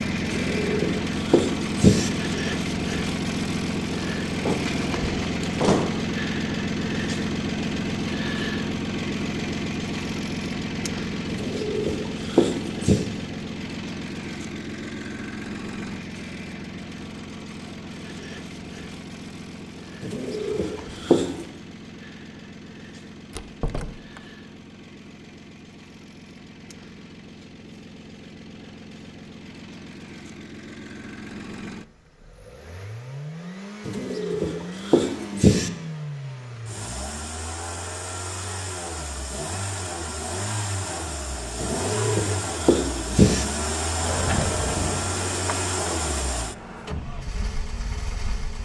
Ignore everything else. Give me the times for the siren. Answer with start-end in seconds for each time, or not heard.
not heard.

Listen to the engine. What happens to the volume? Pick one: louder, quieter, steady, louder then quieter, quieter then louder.
quieter then louder.